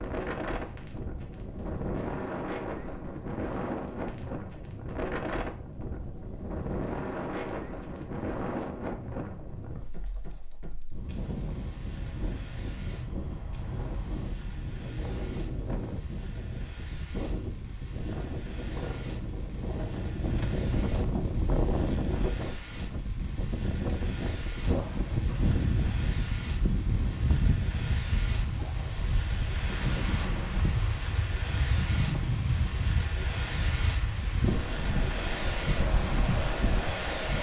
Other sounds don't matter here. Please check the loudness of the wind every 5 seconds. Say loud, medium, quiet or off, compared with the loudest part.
loud, loud, medium, medium, loud, loud, loud, loud.